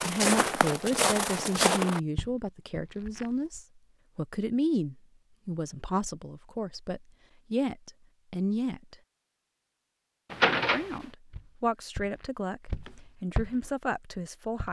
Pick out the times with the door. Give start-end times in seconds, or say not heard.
10.3-11.0.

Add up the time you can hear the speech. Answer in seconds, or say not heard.
13 s.